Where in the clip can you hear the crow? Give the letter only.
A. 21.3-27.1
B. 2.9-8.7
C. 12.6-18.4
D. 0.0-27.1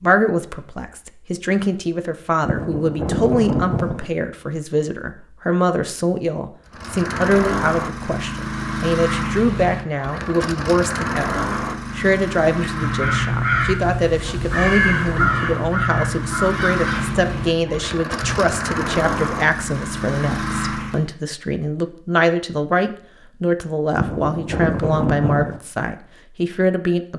C.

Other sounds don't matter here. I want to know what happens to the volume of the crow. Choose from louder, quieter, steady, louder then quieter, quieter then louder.
quieter.